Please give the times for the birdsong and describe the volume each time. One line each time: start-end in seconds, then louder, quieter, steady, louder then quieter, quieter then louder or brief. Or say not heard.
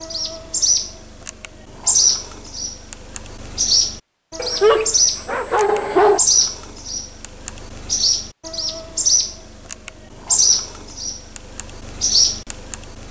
0.0-13.0 steady.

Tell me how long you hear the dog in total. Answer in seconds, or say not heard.
2 s.